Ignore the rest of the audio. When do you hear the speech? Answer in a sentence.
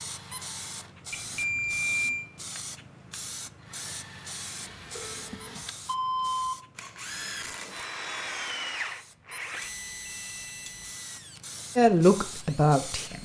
The speech can be heard from 11.8 to 13.2 s.